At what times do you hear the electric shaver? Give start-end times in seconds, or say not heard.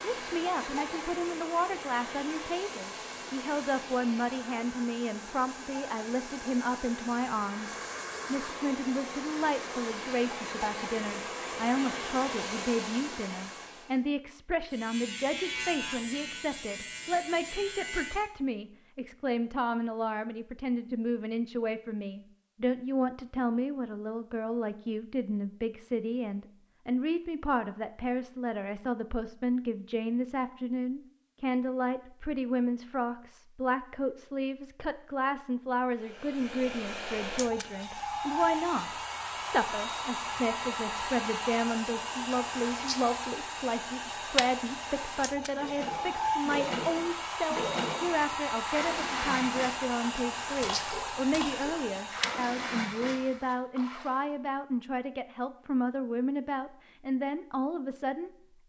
14.7-18.2.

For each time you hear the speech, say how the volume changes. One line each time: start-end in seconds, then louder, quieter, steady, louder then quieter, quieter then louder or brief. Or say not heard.
0.1-58.3 steady.